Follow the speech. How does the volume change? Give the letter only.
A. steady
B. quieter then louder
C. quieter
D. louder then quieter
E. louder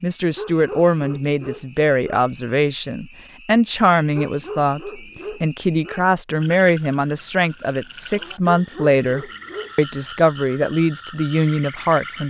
A.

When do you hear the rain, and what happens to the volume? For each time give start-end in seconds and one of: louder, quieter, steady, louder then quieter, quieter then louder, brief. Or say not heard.
not heard.